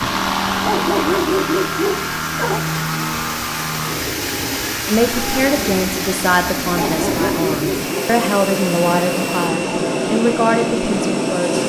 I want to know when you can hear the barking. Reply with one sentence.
You can hear the barking from 0.5 to 2.6 s and from 6.7 to 8.1 s.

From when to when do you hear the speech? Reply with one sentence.
You can hear the speech from 4.8 to 11.6 s.